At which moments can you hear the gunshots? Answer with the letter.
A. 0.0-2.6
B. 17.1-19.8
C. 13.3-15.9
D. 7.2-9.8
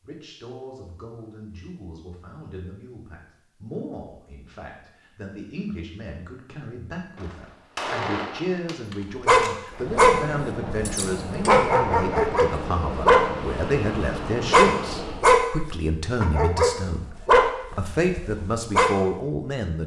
D.